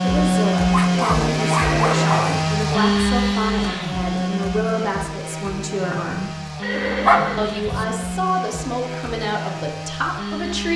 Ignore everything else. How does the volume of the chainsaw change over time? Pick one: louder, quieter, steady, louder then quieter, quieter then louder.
quieter.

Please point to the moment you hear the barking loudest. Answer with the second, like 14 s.
7 s.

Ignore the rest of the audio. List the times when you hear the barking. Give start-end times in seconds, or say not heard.
0.7-2.5, 6.9-7.8.